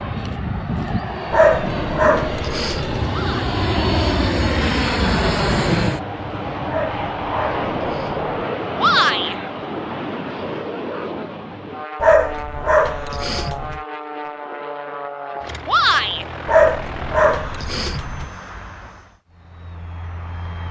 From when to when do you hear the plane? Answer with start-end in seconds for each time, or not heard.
0.0-20.6.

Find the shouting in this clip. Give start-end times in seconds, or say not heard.
3.0-3.5, 8.8-9.3, 15.7-16.2.